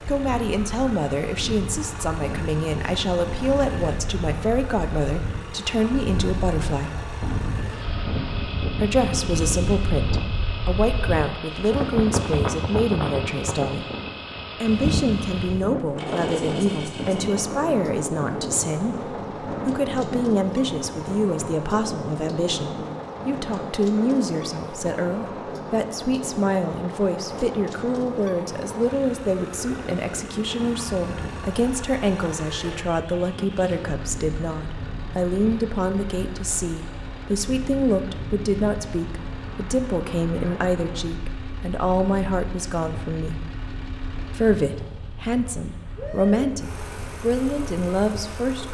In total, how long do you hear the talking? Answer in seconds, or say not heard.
45 s.